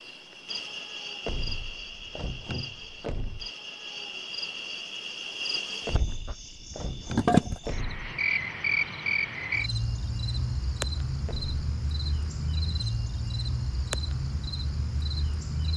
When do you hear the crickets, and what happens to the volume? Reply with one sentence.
You can hear the crickets from 0.0 to 15.7 s, getting louder then quieter.